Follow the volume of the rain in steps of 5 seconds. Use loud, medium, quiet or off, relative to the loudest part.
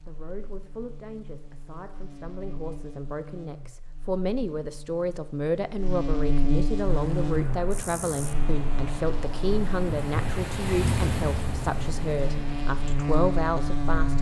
off, medium, loud.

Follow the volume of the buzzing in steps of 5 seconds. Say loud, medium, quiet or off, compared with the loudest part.
quiet, loud, loud.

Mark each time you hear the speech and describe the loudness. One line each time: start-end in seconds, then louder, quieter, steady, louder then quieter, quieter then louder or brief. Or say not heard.
0.1-14.1 louder.